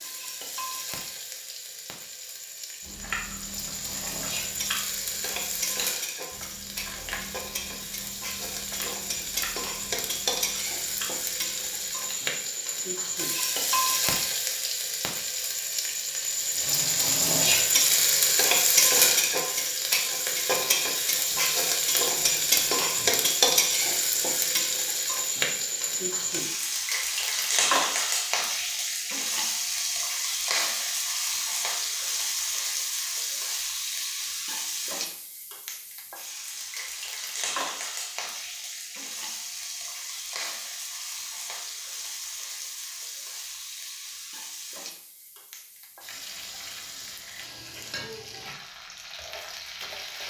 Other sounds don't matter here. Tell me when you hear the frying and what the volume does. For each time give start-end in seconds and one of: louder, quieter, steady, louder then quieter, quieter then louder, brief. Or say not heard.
0.0-50.2 louder then quieter.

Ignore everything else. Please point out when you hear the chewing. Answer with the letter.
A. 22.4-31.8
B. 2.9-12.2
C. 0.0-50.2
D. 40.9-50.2
B.